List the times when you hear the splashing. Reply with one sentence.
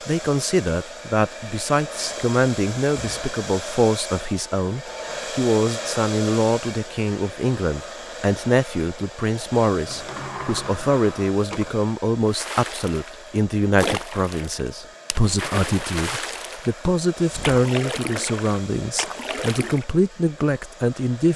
You can hear the splashing from 12.2 to 19.9 s.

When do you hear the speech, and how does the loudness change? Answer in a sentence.
The speech can be heard from 0.1 to 21.3 s, at a steady volume.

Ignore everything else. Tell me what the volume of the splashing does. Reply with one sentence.
The volume of the splashing goes down, then up.